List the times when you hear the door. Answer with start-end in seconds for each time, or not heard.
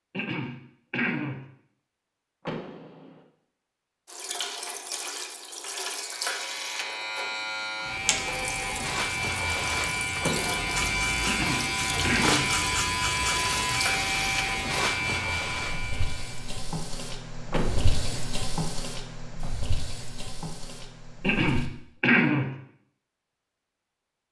2.5-3.2, 10.2-10.8, 17.5-18.3.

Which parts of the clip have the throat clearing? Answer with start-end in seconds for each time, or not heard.
0.1-1.4, 11.2-12.5, 21.2-22.5.